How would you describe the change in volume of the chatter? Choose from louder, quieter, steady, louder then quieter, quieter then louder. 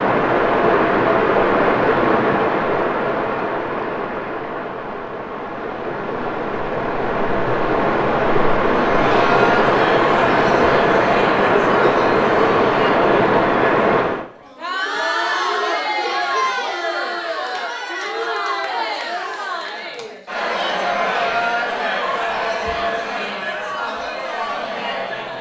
steady.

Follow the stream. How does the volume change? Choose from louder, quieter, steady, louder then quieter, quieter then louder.
quieter then louder.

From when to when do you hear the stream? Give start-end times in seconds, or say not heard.
0.0-14.2.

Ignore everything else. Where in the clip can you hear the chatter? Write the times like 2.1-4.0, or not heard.
8.7-25.3.